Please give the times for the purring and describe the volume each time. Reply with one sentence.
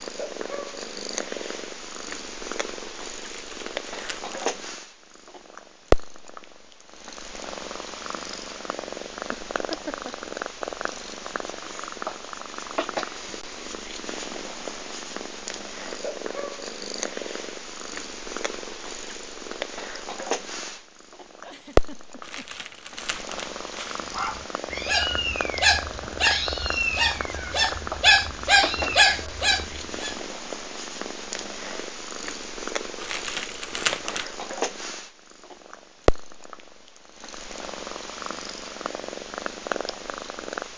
The purring can be heard from 0.0 to 40.7 s, at a steady volume.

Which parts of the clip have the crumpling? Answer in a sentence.
You can hear the crumpling from 3.2 to 4.5 s, from 22.2 to 24.1 s and from 33.0 to 34.2 s.